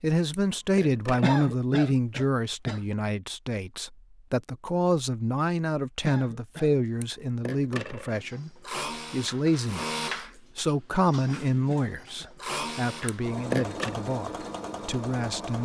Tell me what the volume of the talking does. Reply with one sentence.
The loudness of the talking goes down.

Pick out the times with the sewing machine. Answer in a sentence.
You can hear the sewing machine from 8.1 to 15.6 s.